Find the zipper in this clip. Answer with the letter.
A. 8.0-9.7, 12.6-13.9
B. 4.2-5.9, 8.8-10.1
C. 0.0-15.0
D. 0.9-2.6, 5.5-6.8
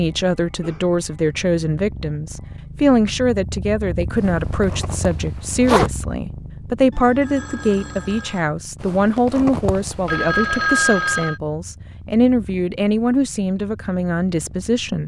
B.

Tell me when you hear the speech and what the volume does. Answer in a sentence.
The speech can be heard from 0.0 to 15.0 s, at a steady volume.